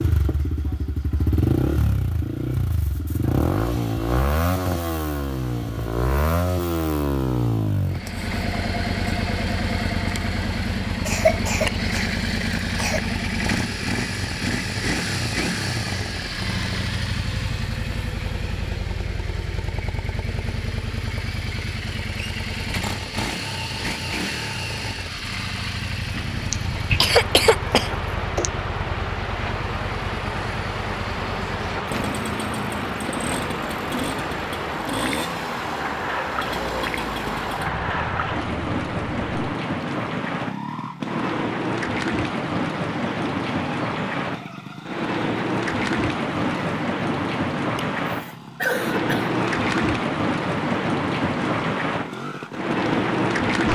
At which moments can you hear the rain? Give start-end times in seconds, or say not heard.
26.1-53.7.